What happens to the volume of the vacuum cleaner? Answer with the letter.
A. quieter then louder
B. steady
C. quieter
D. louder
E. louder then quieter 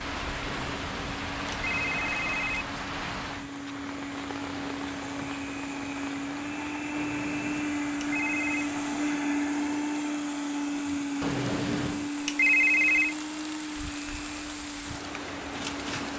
E.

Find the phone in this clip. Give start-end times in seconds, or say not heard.
0.5-2.6, 6.9-8.5, 11.2-13.2.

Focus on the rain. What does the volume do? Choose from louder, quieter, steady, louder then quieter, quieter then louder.
quieter then louder.